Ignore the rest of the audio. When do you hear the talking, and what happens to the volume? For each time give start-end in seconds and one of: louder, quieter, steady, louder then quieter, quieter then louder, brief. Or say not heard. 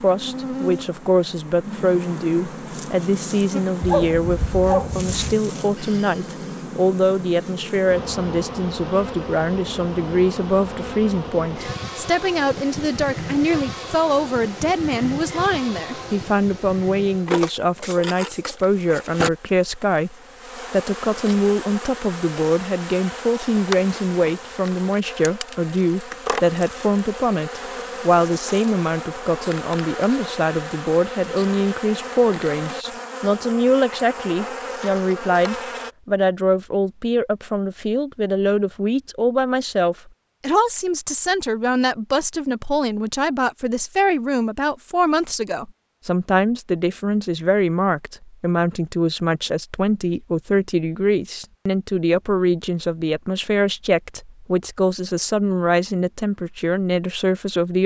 0.0-57.8 steady.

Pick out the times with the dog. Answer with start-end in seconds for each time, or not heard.
3.8-5.2.